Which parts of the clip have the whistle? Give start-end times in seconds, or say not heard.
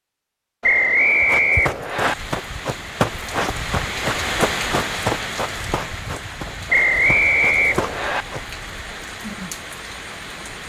0.6-2.1, 6.7-8.2.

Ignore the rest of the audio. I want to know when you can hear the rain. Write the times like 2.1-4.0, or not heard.
1.9-10.6.